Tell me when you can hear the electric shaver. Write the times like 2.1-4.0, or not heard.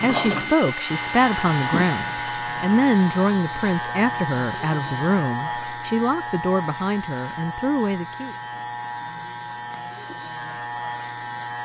0.0-11.5.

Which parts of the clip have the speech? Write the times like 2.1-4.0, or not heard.
0.0-8.3.